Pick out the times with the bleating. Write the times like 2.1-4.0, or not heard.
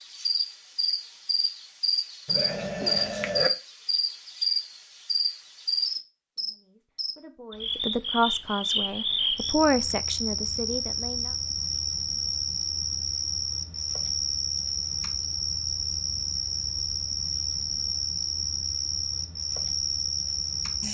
2.2-3.5.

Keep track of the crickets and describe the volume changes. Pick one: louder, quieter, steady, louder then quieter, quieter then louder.
steady.